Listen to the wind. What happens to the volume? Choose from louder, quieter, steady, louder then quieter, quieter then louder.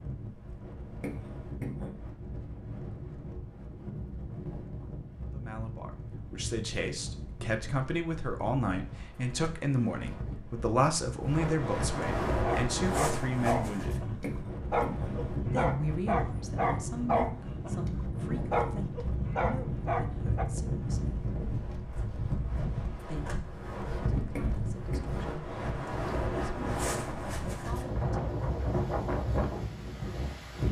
louder.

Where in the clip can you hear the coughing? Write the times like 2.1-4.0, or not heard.
1.0-1.9, 14.2-15.2, 24.4-25.2.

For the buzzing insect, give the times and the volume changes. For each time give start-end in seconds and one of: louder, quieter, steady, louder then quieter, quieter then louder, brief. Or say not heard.
not heard.